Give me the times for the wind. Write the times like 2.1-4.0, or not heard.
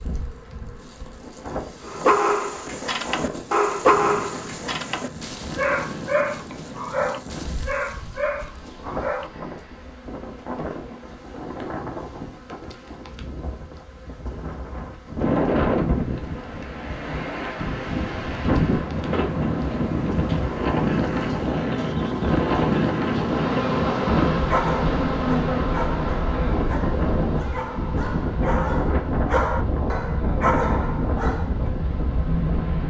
0.0-32.8.